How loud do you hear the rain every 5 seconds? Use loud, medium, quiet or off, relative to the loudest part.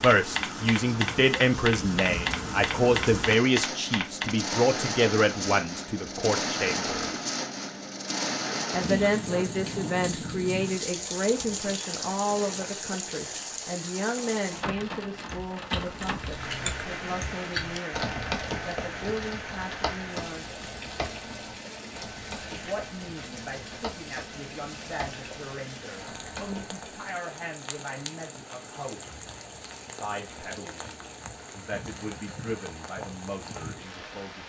loud, loud, loud, medium, medium, medium, medium.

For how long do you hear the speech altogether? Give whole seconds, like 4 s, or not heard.
29 s.